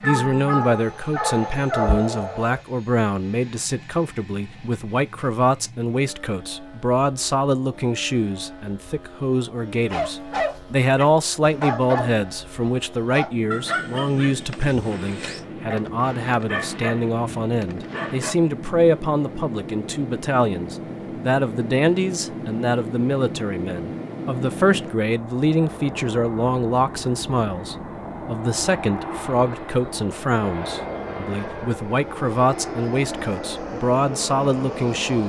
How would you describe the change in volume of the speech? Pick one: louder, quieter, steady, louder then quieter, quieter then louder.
steady.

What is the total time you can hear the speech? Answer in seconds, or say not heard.
35 s.